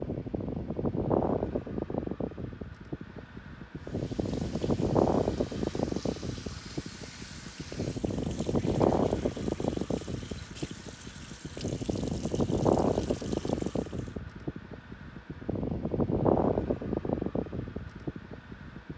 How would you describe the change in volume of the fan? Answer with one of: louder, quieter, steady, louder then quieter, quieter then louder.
steady.